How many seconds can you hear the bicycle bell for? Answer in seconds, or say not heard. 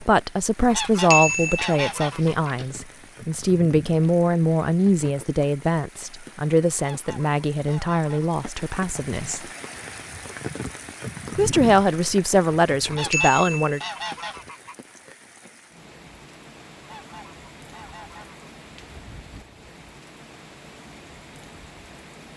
3 s.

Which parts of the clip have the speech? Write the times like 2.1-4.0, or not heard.
0.0-9.4, 11.3-13.8.